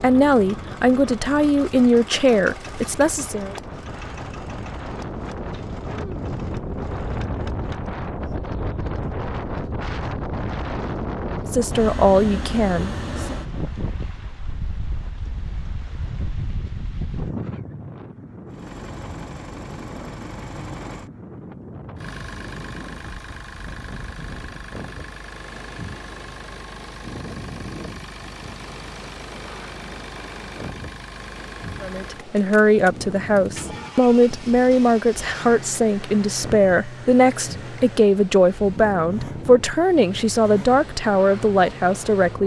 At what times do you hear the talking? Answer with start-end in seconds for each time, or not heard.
0.0-3.5, 11.5-13.3, 31.8-42.4.